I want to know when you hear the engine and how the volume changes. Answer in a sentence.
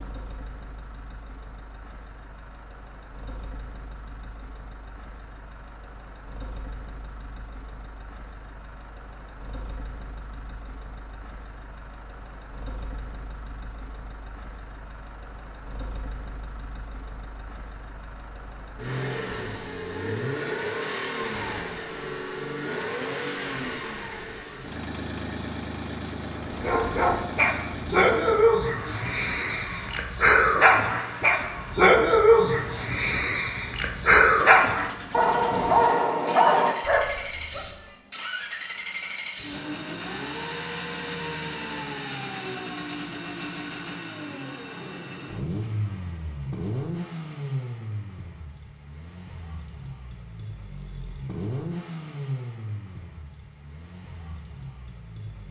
The engine can be heard from 0.0 to 55.4 s, getting louder.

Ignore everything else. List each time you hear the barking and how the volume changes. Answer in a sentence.
The barking can be heard from 26.4 to 37.7 s, at a steady volume.